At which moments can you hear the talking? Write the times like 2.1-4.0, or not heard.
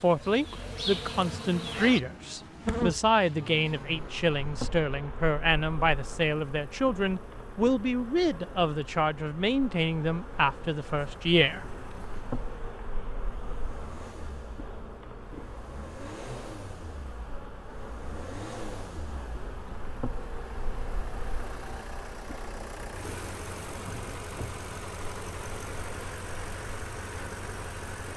0.0-11.7.